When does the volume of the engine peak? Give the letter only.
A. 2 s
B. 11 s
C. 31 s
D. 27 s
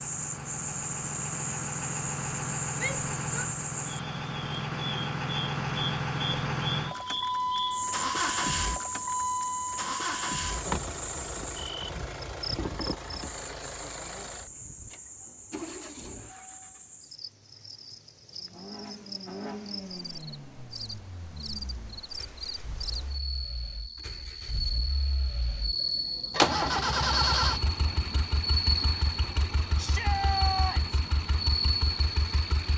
D.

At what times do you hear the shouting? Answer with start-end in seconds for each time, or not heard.
2.8-3.5, 29.8-31.0.